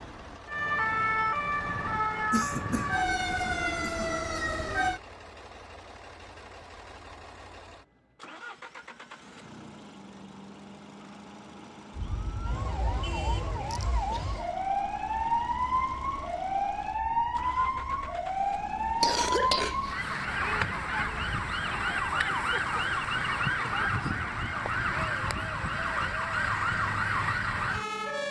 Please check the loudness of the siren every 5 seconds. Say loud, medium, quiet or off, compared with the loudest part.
loud, off, medium, loud, loud, loud.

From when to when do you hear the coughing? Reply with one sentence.
You can hear the coughing from 2.3 to 4.2 s, from 13.7 to 14.4 s and from 19.0 to 20.2 s.